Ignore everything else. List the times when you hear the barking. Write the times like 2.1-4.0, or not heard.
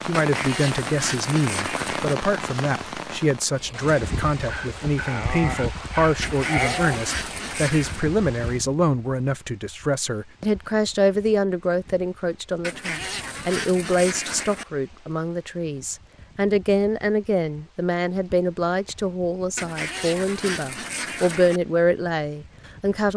4.4-7.0.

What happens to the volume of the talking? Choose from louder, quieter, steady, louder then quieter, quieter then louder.
steady.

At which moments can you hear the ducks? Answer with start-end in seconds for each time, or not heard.
0.1-2.1, 6.2-8.1, 12.6-14.7, 19.6-21.6.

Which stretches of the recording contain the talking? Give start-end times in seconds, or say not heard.
0.0-23.1.